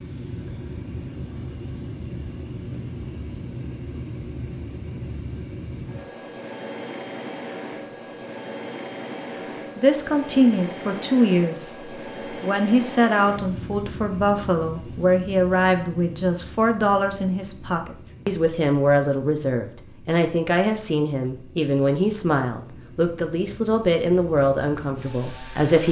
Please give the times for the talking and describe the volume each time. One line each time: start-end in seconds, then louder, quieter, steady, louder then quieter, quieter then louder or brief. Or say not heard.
9.8-25.8 steady.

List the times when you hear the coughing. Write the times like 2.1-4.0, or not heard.
not heard.